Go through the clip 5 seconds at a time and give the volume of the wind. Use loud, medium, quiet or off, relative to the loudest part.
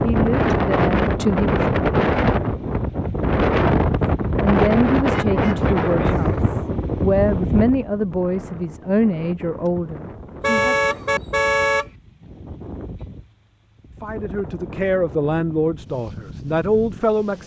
loud, medium, quiet, quiet.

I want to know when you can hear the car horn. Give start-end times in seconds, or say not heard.
5.1-6.5, 10.4-11.8.